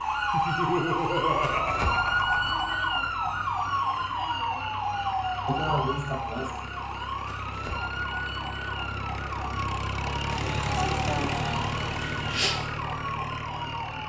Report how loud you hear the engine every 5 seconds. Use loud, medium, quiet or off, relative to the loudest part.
quiet, medium, loud.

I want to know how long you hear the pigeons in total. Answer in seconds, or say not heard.
2 s.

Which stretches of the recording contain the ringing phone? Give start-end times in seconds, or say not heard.
not heard.